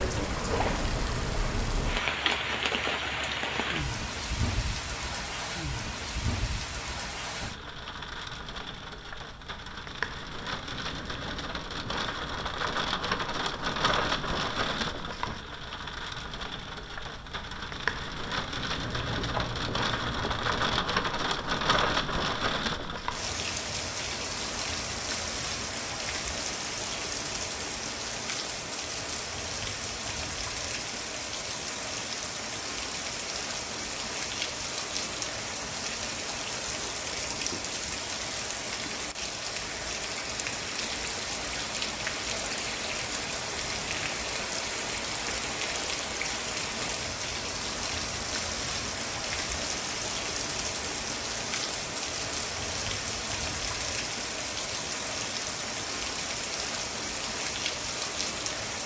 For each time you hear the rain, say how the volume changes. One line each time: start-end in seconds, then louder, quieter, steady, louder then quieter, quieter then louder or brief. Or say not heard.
0.0-58.8 steady.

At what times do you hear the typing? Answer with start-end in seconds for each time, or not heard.
18.8-20.9.